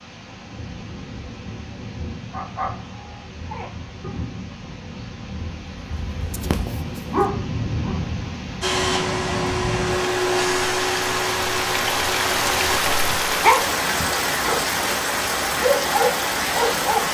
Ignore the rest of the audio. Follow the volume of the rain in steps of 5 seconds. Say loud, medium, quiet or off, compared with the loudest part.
quiet, medium, loud, loud.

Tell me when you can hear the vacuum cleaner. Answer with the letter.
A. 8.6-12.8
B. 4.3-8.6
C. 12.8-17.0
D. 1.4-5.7
A.